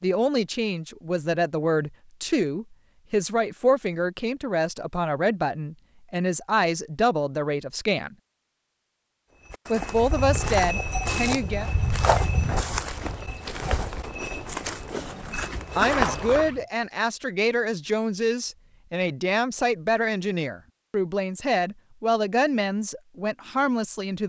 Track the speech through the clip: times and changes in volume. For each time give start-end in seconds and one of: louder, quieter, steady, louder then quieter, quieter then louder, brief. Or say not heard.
0.0-8.2 steady
9.7-11.7 brief
15.8-24.2 steady.